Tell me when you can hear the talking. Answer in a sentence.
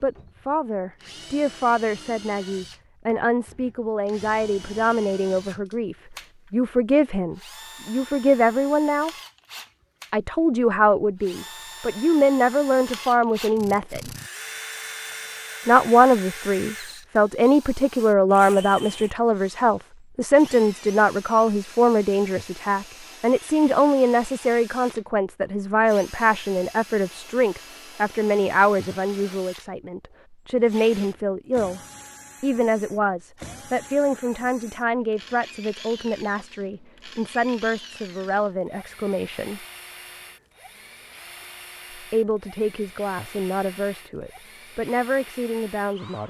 You can hear the talking from 0.0 to 9.1 s, from 10.1 to 14.1 s, from 15.7 to 31.8 s, from 32.4 to 39.6 s and from 41.9 to 46.2 s.